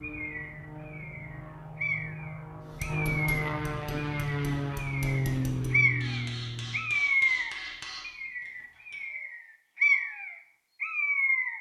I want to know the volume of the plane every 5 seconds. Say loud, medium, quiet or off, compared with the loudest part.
loud, loud, off.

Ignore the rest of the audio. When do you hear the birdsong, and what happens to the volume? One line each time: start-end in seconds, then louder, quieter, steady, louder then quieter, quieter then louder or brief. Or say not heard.
0.0-11.5 louder.